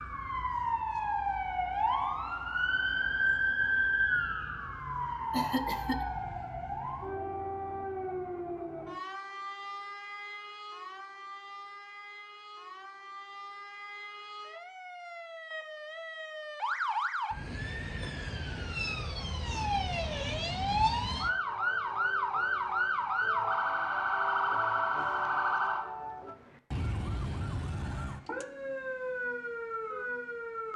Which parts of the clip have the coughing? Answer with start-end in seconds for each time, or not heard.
5.3-6.0.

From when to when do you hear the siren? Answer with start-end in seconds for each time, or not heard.
0.0-30.7.